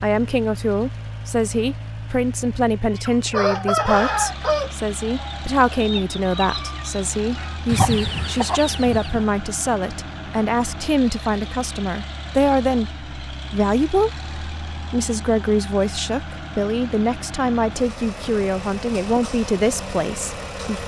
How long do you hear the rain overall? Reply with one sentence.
You can't hear the rain here.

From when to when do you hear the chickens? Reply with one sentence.
The chickens can be heard from 2.9 to 9.2 s.